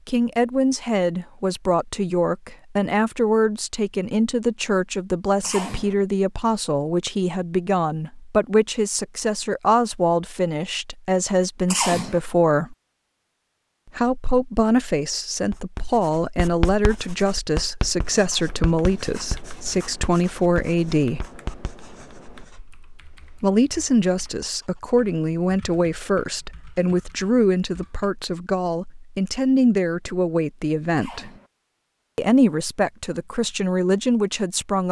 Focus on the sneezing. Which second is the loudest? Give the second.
12 s.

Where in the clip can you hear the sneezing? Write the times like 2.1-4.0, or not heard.
5.4-6.0, 11.7-12.2, 30.9-31.5.